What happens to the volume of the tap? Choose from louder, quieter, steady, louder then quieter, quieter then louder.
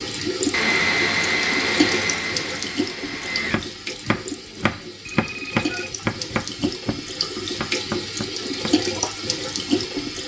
quieter then louder.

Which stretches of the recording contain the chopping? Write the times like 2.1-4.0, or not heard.
3.5-9.8.